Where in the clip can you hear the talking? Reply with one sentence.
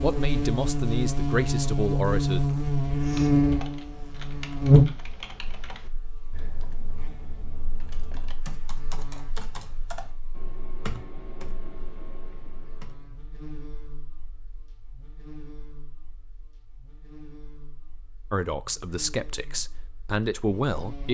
You can hear the talking from 0.0 to 2.4 s and from 18.3 to 21.0 s.